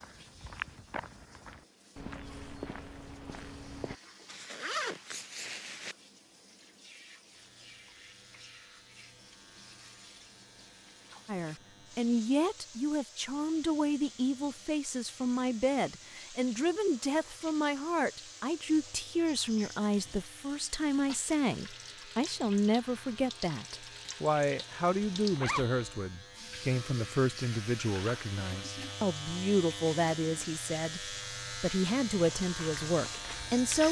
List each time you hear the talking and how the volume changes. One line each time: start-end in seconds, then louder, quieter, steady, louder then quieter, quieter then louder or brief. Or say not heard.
11.2-33.8 steady.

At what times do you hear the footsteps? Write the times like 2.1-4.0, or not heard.
0.0-4.0, 32.1-33.8.